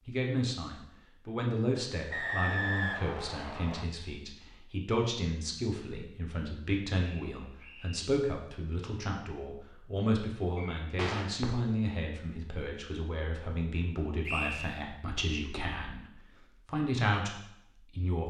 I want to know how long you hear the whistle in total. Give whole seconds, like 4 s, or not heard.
3 s.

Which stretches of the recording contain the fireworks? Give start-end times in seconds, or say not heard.
10.6-11.8.